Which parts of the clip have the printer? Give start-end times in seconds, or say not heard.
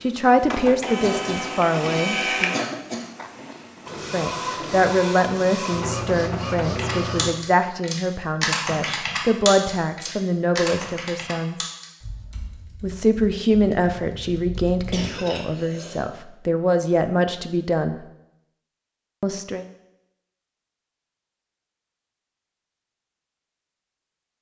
0.0-7.3.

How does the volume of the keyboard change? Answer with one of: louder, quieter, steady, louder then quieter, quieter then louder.
quieter.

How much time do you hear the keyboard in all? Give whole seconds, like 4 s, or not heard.
8 s.